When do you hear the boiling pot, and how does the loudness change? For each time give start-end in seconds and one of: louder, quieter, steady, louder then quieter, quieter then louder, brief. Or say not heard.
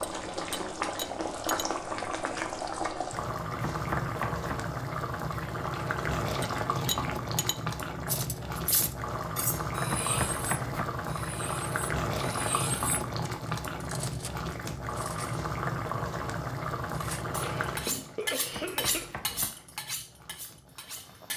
0.0-21.3 quieter.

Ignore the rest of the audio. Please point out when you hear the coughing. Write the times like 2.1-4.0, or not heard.
17.4-19.1.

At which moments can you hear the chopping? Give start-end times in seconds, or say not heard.
3.6-4.5, 9.8-10.8, 18.5-19.5.